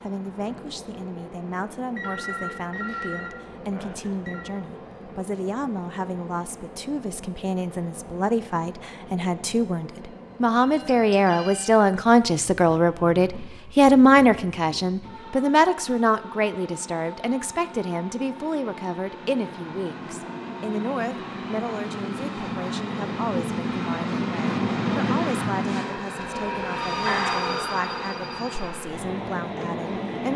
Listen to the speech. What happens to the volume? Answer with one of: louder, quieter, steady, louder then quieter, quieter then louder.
louder then quieter.